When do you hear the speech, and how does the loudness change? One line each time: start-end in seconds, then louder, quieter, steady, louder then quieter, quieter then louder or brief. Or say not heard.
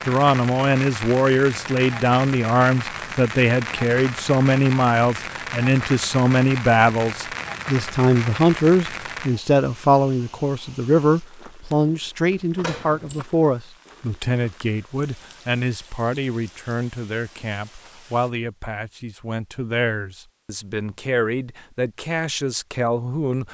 0.1-23.5 quieter.